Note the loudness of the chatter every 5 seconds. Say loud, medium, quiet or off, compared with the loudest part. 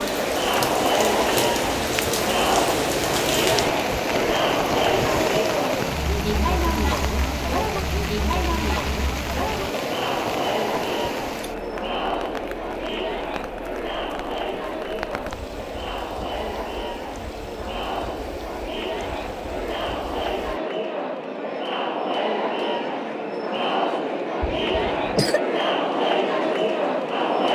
loud, loud, medium, medium, loud, loud.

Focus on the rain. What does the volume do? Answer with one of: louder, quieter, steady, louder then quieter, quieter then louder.
quieter.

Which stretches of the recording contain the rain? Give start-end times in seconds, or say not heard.
0.0-20.6.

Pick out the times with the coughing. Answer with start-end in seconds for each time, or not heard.
24.4-25.4.